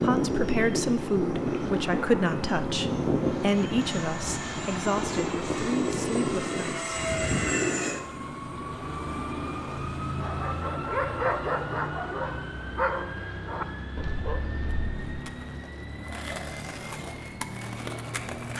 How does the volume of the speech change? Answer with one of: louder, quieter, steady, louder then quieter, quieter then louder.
quieter.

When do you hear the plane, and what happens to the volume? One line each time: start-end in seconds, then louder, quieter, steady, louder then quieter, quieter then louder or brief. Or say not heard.
0.0-18.5 quieter.